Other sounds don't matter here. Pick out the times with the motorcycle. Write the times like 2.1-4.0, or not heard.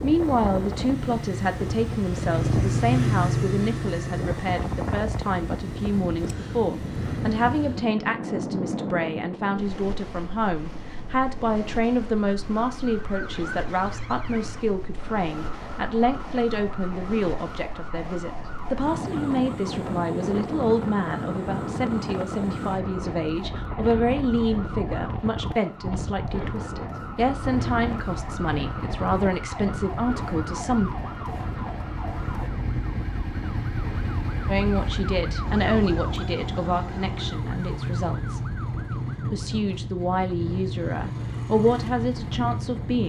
0.0-7.7, 27.4-43.0.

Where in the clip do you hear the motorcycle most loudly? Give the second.
3 s.